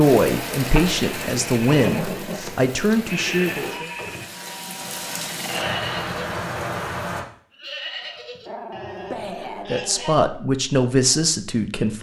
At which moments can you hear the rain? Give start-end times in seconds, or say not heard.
0.0-7.2.